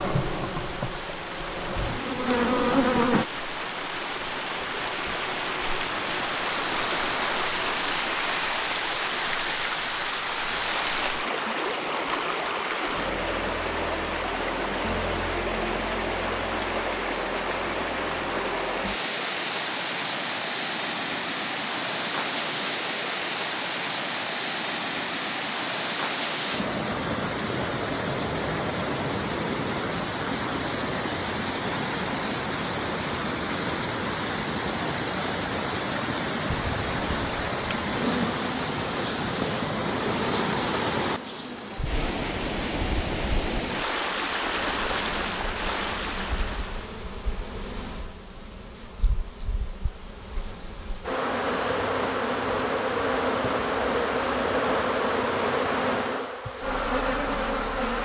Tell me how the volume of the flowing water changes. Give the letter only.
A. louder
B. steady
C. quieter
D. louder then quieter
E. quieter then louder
B.